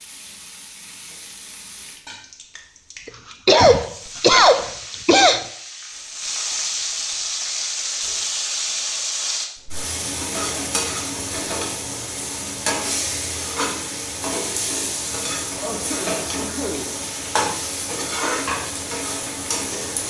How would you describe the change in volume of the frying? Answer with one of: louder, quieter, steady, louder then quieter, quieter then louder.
louder.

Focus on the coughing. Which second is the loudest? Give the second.
4 s.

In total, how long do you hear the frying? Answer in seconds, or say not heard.
20 s.